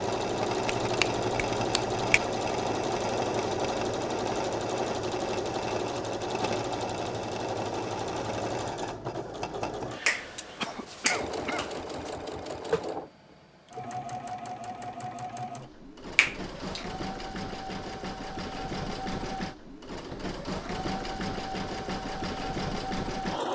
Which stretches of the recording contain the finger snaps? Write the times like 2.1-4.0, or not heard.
0.7-2.2, 10.1-12.1, 16.1-16.9.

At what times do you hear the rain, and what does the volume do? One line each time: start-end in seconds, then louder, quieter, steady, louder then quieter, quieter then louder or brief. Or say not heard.
not heard.